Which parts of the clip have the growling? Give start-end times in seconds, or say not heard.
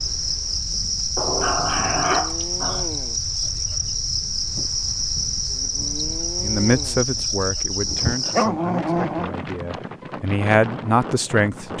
1.1-2.9, 8.0-9.3.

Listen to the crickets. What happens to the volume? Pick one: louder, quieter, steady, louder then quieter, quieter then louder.
steady.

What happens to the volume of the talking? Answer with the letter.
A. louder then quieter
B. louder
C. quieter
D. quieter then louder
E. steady
D.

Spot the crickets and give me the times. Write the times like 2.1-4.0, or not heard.
0.0-8.5.